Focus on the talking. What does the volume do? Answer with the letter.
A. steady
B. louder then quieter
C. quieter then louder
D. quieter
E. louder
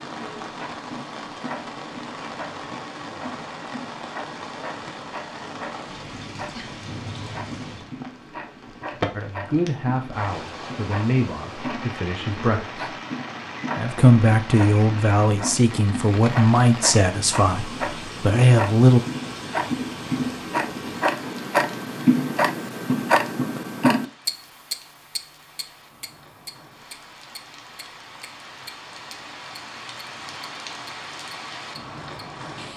E.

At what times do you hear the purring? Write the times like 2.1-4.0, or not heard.
not heard.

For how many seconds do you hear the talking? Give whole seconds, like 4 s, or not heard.
9 s.